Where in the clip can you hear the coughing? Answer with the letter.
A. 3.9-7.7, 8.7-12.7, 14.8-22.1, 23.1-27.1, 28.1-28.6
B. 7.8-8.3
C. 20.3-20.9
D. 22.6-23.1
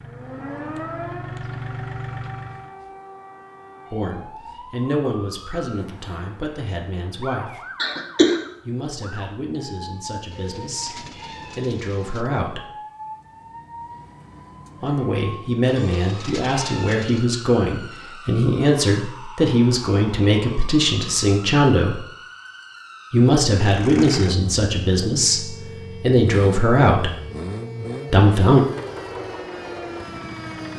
B.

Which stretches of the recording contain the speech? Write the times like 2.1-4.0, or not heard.
3.9-7.7, 8.7-12.7, 14.8-22.1, 23.1-27.1, 28.1-28.6.